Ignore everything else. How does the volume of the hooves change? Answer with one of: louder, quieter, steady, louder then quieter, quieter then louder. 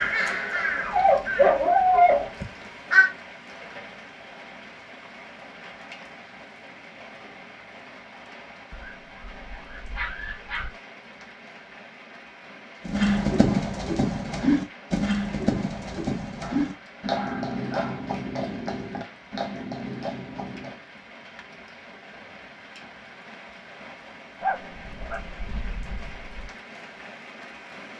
quieter.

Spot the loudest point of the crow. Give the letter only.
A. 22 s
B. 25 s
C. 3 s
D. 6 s
C.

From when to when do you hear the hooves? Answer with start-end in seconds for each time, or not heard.
12.8-20.8.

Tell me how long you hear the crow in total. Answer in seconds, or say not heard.
3 s.